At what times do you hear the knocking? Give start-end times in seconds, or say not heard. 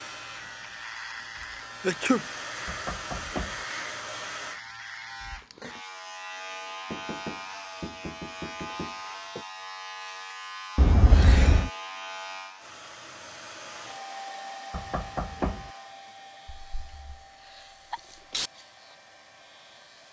2.6-3.6, 6.9-9.4, 14.7-15.7.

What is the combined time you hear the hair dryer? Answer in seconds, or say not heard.
12 s.